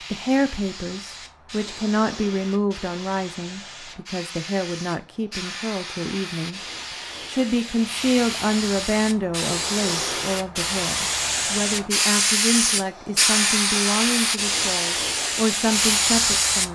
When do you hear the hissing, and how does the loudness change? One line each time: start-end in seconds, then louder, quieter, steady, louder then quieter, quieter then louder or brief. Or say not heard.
0.0-16.7 louder.